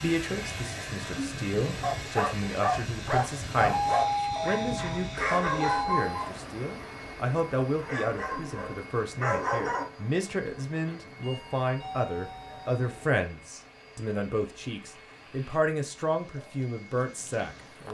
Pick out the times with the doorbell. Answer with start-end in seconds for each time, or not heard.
3.7-6.3, 11.2-13.1.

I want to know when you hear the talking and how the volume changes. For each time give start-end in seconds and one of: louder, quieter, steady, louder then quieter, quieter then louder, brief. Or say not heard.
0.0-17.8 steady.